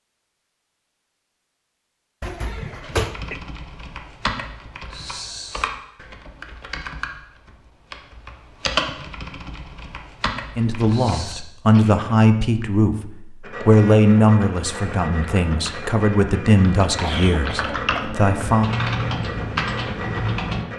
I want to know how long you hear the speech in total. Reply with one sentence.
You can hear the speech for 8 seconds altogether.